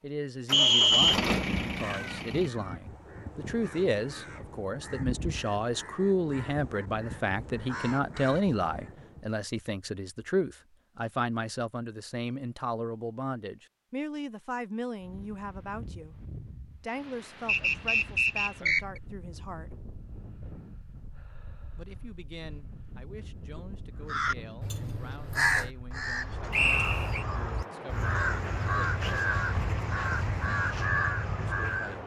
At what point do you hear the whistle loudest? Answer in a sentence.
The volume of the whistle peaks at 1 second.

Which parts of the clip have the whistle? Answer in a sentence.
The whistle can be heard from 0.5 to 1.2 s, from 17.4 to 18.8 s and from 26.5 to 27.2 s.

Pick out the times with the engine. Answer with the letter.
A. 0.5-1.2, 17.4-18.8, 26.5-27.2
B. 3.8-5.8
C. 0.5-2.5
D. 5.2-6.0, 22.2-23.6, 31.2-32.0
C.